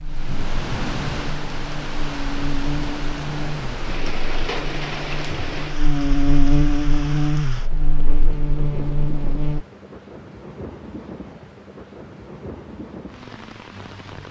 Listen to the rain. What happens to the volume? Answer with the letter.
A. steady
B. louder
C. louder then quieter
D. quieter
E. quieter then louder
D.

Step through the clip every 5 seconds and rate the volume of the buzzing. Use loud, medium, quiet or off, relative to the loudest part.
medium, loud, off.